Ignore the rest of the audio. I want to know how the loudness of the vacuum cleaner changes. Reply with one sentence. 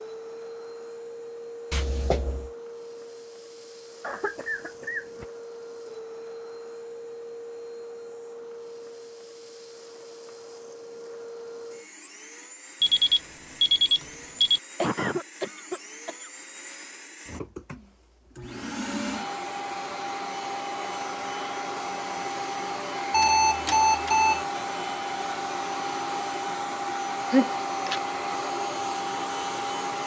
The loudness of the vacuum cleaner goes up.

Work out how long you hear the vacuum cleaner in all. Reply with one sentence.
You can hear the vacuum cleaner for 30 seconds altogether.